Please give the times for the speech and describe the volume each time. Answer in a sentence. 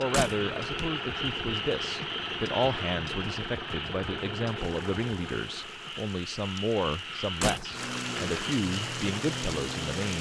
You can hear the speech from 0.0 to 10.1 s, at a steady volume.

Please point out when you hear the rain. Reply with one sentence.
The rain can be heard from 4.5 to 10.1 s.